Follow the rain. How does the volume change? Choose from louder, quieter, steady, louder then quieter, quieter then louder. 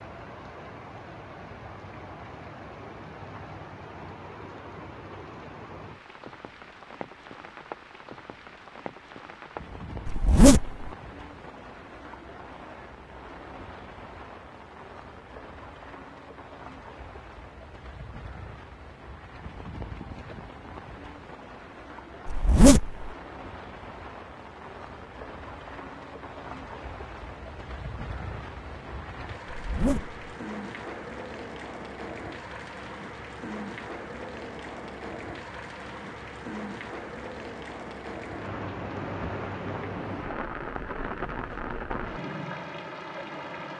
louder.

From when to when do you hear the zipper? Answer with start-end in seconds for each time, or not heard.
10.1-10.9, 22.2-23.1, 29.5-30.2.